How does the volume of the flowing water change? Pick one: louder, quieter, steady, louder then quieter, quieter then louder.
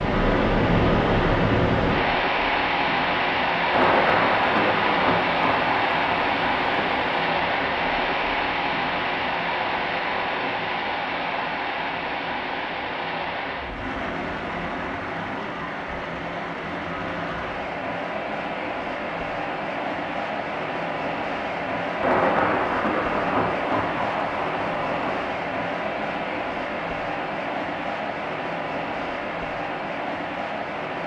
quieter.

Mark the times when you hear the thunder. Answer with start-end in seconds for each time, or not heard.
3.7-7.2, 22.0-25.3.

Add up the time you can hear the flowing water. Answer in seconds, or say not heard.
31 s.